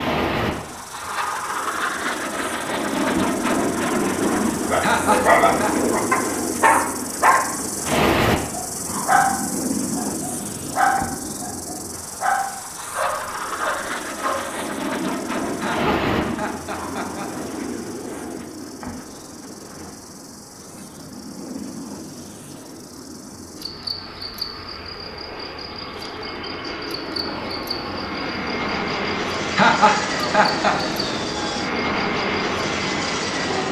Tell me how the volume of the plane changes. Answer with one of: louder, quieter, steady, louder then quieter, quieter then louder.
quieter then louder.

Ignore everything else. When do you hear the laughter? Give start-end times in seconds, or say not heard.
4.8-5.8, 15.6-17.3, 29.6-30.8.